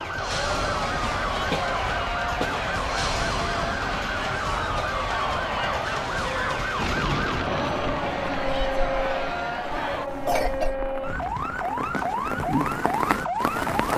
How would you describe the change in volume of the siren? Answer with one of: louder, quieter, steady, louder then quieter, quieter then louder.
steady.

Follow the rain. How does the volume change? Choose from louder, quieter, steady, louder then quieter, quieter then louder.
quieter then louder.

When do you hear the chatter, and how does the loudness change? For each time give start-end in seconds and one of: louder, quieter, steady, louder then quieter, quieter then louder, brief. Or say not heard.
0.0-10.1 steady.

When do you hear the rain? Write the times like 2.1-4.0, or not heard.
6.8-13.9.